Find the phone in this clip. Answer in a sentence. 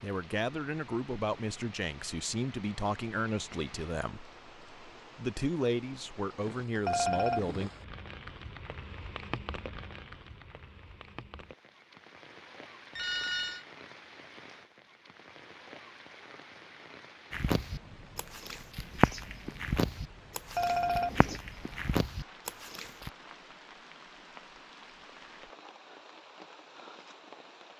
The phone can be heard from 6.8 to 7.7 s, from 12.9 to 13.7 s and from 20.6 to 21.4 s.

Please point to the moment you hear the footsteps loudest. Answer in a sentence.
The loudest moment of the footsteps is at 19 seconds.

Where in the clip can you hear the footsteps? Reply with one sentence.
The footsteps can be heard from 17.3 to 23.1 s.